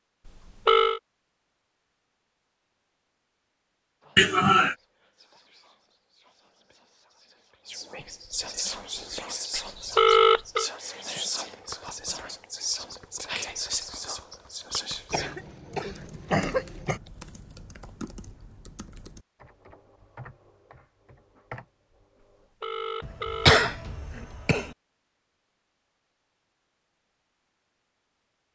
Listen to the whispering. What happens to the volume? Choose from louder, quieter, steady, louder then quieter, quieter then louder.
louder.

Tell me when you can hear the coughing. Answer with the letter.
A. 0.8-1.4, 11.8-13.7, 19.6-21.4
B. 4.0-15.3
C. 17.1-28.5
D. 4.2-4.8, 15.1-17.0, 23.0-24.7
D.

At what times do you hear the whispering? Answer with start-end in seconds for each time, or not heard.
4.0-15.3.